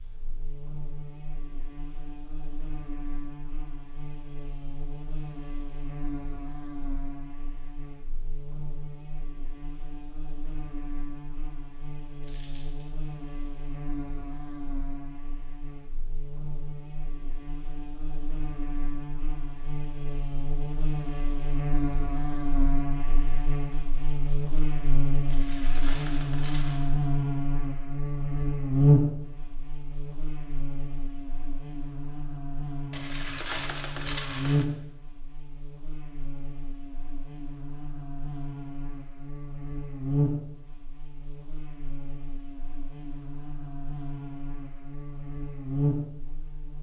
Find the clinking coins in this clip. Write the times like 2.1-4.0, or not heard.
12.2-12.9, 25.3-26.9, 32.9-34.6.